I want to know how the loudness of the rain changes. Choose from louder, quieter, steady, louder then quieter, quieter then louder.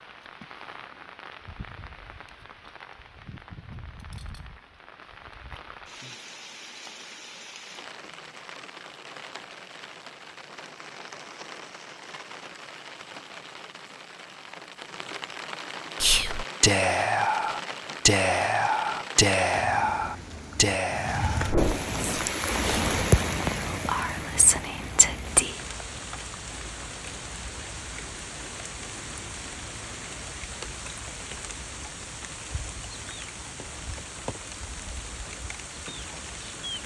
louder then quieter.